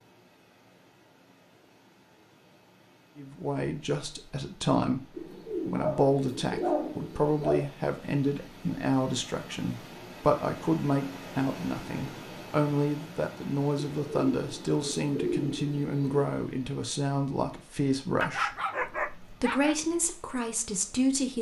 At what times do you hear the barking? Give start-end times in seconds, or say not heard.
5.8-7.7, 18.2-19.8.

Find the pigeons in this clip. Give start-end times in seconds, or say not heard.
5.2-7.4, 13.8-16.3.